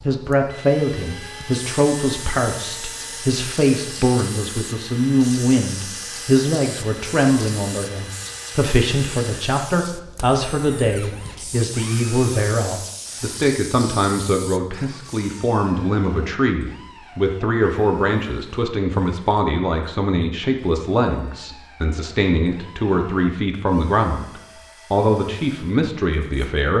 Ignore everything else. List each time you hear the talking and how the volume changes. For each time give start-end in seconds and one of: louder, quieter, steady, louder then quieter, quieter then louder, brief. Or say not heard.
0.0-26.7 steady.